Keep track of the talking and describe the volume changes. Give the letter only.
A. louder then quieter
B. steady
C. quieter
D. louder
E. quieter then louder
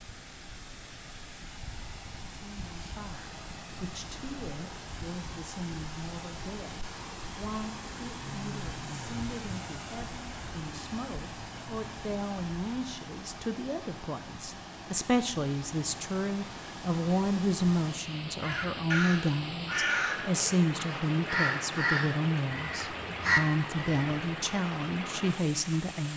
D.